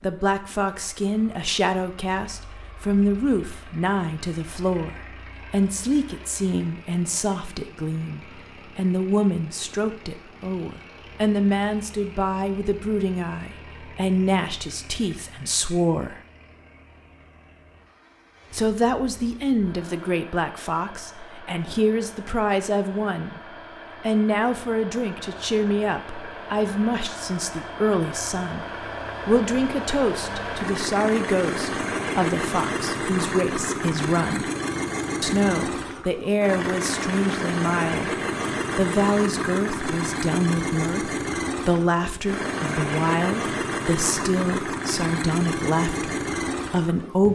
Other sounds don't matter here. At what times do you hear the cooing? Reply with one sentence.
You can't hear the cooing here.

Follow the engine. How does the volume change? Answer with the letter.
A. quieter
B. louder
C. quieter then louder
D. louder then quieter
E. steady
B.